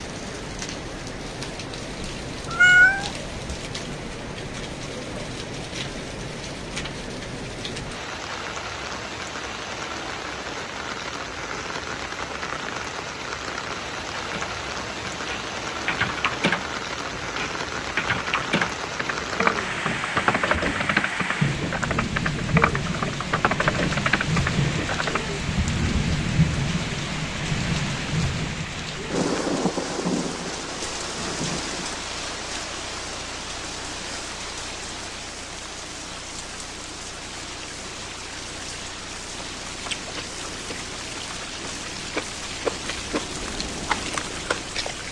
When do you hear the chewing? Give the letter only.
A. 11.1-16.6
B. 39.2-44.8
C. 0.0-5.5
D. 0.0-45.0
B.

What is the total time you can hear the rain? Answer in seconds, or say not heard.
45 s.